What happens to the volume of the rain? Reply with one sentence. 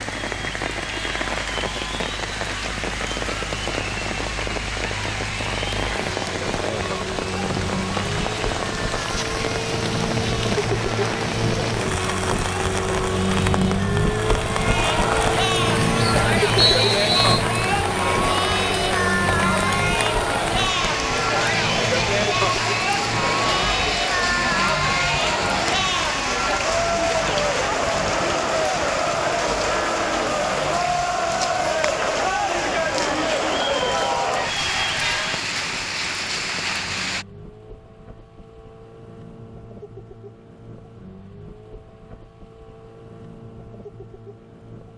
The volume of the rain stays about the same.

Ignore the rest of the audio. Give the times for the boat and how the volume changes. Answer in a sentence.
The boat can be heard from 0.0 to 44.9 s, getting louder then quieter.